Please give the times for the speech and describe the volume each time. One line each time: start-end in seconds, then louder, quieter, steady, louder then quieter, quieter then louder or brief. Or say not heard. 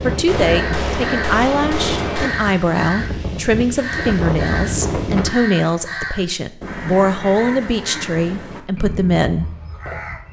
0.0-9.5 steady.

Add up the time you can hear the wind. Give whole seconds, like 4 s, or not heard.
5 s.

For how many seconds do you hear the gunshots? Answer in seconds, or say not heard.
2 s.